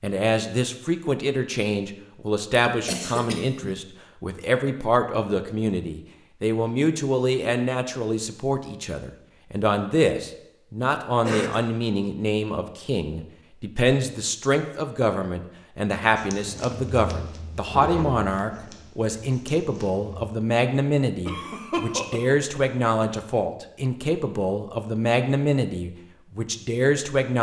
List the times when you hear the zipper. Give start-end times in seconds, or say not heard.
17.6-18.1.